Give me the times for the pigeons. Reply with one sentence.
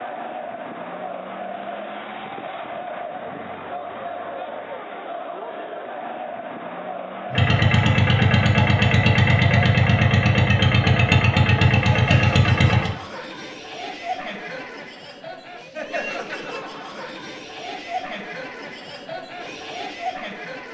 You can't hear the pigeons here.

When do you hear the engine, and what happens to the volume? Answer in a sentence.
You can hear the engine from 7.3 to 12.9 s, at a steady volume.